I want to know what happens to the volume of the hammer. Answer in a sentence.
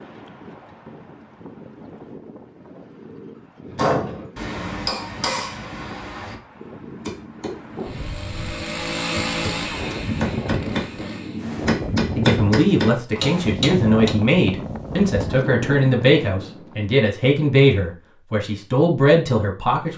The loudness of the hammer goes down, then up.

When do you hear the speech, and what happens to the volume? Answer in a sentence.
The speech can be heard from 12.2 to 19.9 s, at a steady volume.